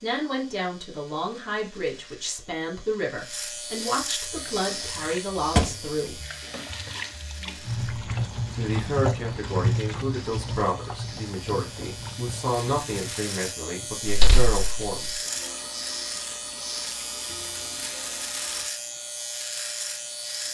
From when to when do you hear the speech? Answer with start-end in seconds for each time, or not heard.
0.0-6.2, 8.6-15.2.